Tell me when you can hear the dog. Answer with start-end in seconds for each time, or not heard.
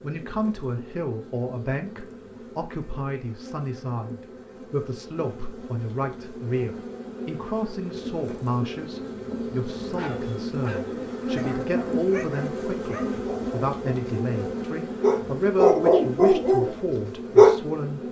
9.9-14.2, 15.0-17.6.